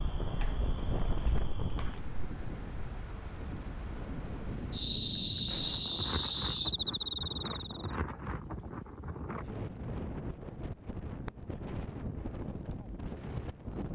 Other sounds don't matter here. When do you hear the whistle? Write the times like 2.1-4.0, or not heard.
not heard.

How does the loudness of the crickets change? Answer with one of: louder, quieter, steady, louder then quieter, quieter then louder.
louder.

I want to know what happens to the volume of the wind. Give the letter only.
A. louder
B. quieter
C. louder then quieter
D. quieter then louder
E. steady
E.